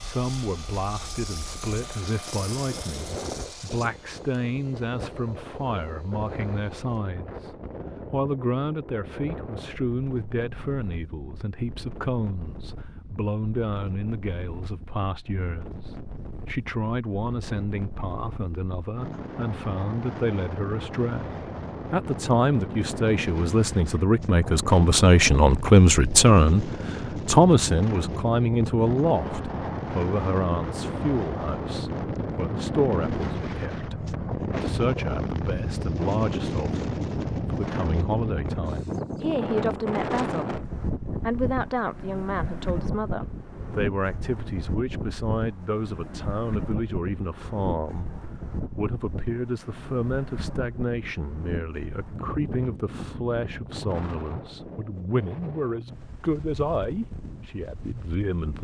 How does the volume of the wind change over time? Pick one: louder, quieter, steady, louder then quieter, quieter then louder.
louder then quieter.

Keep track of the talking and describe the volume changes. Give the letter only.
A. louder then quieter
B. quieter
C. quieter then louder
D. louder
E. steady
A.